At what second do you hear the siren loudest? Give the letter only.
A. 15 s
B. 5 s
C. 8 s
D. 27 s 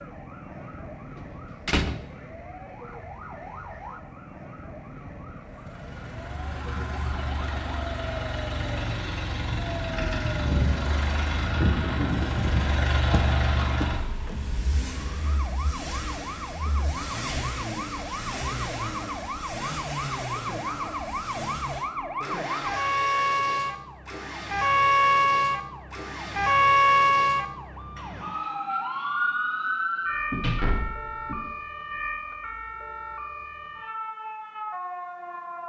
D.